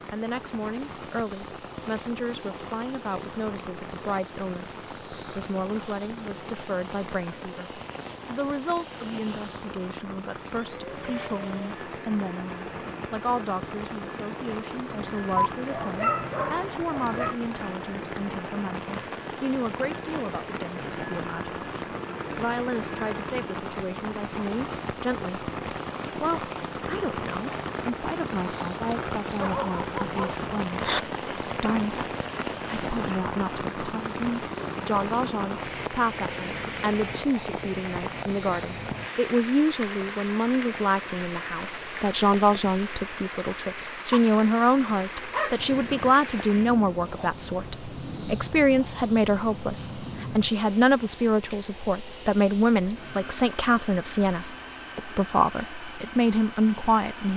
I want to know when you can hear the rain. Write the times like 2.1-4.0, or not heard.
0.0-57.3.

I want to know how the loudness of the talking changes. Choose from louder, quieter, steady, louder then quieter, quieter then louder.
louder.